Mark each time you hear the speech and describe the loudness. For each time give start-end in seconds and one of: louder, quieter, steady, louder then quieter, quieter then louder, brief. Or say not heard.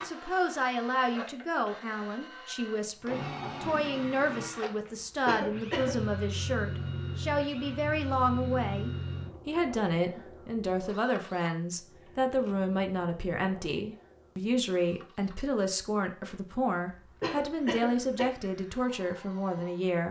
0.0-20.0 steady.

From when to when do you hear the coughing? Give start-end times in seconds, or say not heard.
5.2-6.0, 17.2-18.3.